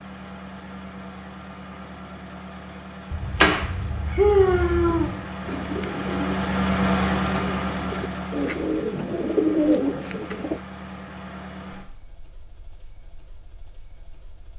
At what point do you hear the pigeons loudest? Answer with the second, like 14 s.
10 s.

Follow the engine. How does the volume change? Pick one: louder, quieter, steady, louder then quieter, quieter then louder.
louder then quieter.